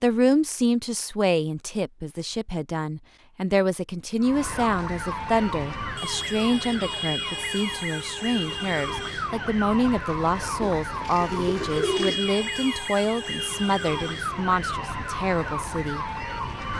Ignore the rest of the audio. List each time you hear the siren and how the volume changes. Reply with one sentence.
The siren can be heard from 4.2 to 16.7 s, at a steady volume.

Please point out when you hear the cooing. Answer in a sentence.
The cooing can be heard from 10.6 to 12.2 s.